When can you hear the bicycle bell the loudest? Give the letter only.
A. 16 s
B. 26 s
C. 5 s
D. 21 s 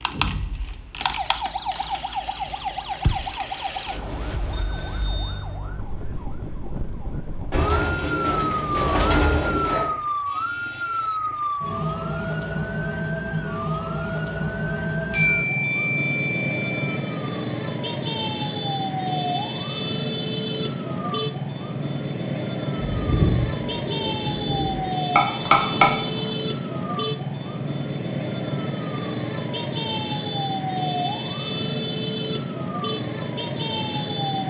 B.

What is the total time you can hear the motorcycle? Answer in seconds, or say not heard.
not heard.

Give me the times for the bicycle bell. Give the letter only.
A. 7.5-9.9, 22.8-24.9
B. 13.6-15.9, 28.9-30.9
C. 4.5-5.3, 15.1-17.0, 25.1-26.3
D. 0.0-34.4
C.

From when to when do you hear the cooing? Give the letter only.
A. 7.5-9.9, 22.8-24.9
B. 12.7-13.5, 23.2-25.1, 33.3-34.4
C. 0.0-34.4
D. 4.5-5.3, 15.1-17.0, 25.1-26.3
A.